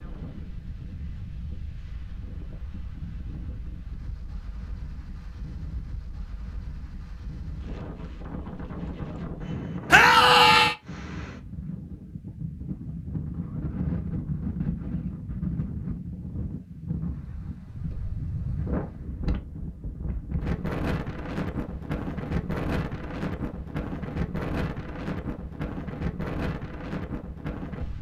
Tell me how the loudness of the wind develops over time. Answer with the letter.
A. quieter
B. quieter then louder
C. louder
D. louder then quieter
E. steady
C.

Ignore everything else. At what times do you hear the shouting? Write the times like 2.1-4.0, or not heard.
9.9-10.8.